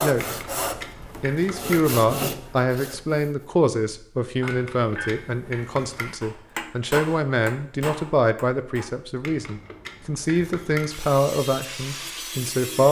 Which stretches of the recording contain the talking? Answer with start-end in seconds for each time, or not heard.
0.0-0.4, 1.2-12.8.